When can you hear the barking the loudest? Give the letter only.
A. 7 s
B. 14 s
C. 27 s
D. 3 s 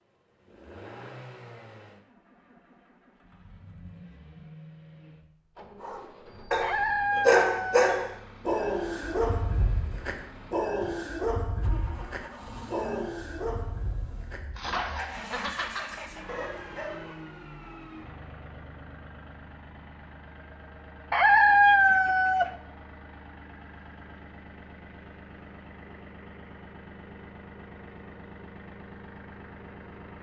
A.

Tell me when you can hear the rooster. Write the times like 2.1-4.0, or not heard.
6.6-7.9, 21.1-22.5.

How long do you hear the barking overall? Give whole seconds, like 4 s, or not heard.
11 s.